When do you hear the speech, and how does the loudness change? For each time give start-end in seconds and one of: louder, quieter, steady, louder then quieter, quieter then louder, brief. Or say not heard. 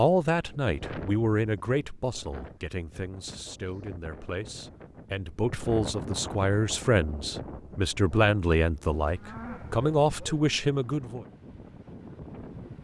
0.0-11.2 quieter then louder.